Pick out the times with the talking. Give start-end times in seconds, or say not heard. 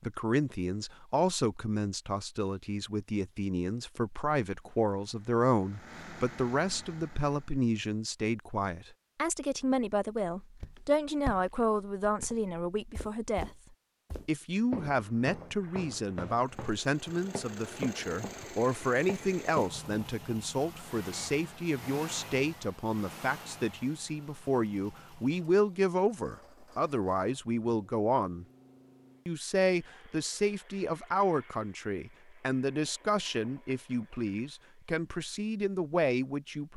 0.0-13.6, 14.2-28.4, 29.2-36.7.